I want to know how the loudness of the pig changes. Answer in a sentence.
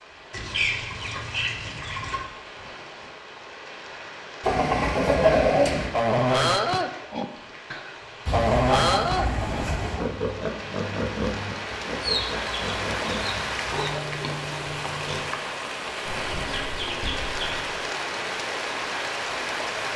The loudness of the pig goes down.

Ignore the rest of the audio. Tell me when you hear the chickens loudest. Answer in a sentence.
The volume of the chickens peaks at 5 seconds.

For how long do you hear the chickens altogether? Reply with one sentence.
You can hear the chickens for 9 seconds altogether.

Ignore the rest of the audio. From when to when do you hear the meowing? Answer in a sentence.
The meowing can't be heard in this clip.